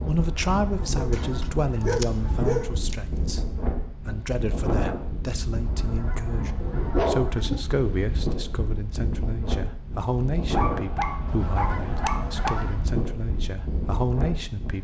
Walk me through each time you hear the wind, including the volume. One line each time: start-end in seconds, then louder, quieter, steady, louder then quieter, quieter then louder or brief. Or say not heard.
0.0-14.8 steady.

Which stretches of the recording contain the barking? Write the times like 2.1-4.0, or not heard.
0.9-3.4, 6.6-8.0, 10.6-12.6.